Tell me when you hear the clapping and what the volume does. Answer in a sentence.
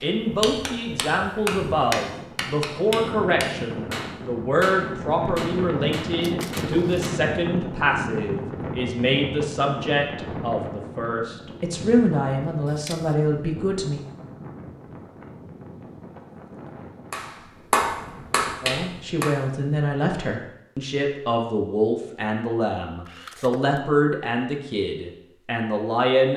The clapping can be heard from 0.0 to 7.2 s, getting quieter; and briefly from 17.1 to 19.3 s.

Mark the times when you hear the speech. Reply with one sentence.
You can hear the speech from 0.0 to 14.0 s and from 18.6 to 26.3 s.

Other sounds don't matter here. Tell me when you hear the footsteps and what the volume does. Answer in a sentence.
The footsteps can't be heard in this clip.